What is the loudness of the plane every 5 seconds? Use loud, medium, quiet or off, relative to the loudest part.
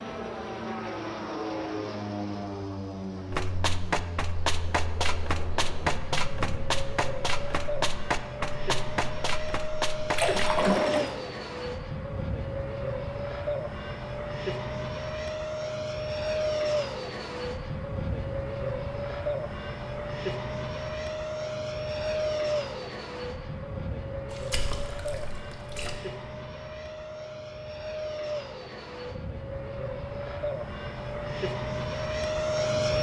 medium, medium, loud, loud, loud, medium, loud.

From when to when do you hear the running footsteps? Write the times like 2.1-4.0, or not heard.
3.3-10.7.